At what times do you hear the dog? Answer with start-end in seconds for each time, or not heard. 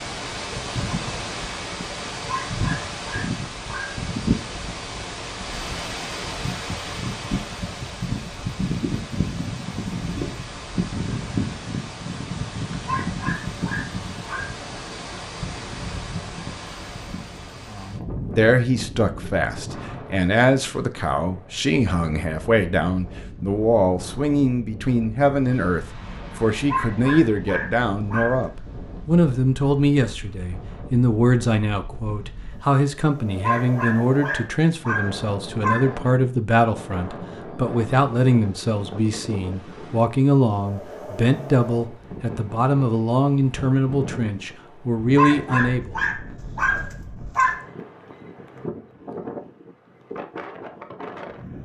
2.2-4.0, 12.8-14.6, 26.6-28.5, 33.4-36.0, 45.1-47.6.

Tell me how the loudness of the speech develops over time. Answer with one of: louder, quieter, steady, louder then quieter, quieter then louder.
steady.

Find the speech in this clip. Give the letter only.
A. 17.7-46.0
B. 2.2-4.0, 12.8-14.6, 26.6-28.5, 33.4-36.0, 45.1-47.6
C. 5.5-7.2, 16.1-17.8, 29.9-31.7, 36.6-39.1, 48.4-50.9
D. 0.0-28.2
A.